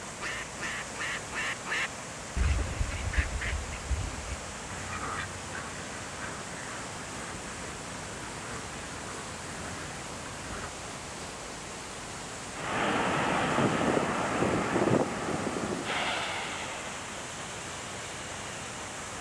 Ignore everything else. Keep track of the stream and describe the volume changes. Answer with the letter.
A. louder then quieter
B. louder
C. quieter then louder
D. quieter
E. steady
E.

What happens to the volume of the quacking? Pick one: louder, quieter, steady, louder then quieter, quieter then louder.
quieter.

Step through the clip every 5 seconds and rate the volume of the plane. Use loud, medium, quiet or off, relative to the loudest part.
off, off, loud, medium.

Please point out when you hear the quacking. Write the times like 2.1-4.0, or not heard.
0.2-10.7.